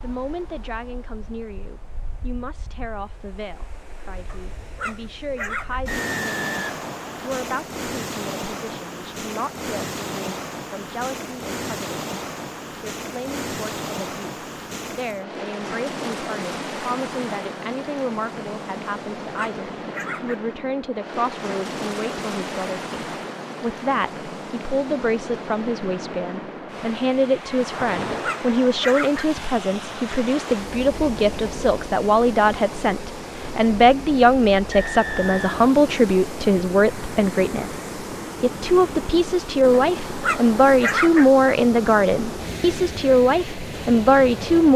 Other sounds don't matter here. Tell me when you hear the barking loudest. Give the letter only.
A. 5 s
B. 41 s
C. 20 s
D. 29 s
B.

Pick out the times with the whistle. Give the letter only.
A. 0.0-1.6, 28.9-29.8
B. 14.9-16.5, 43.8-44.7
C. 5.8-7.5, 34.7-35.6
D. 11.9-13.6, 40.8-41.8
C.